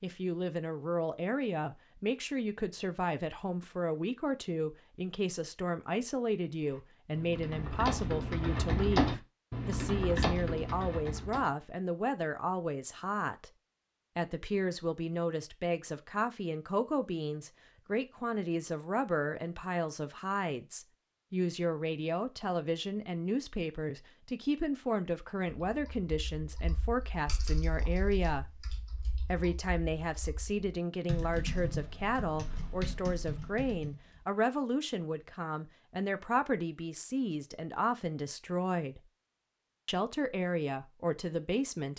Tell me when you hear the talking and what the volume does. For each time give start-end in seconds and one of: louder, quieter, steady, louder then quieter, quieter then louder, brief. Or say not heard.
0.0-13.5 steady
14.2-28.6 steady
29.2-39.0 steady
39.9-41.9 brief.